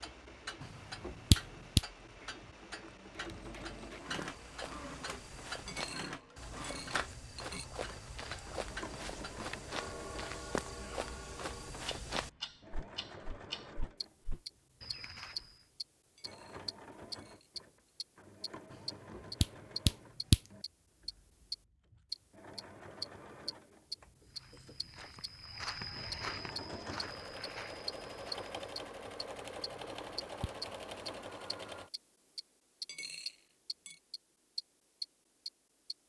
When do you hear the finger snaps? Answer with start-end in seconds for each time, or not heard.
0.6-1.8, 19.1-20.4, 29.7-30.5.